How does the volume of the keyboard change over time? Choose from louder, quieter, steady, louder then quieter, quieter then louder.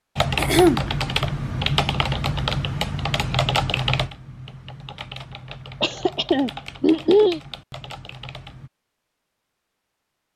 quieter.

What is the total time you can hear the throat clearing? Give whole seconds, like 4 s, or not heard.
2 s.